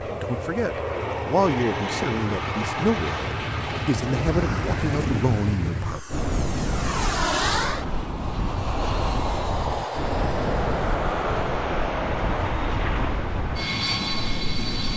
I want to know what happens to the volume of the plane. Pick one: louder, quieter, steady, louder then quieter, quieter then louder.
steady.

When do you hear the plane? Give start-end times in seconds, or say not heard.
0.0-14.9.